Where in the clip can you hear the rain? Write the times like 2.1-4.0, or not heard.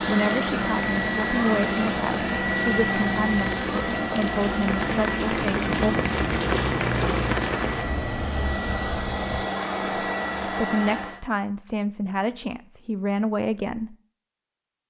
0.0-9.4.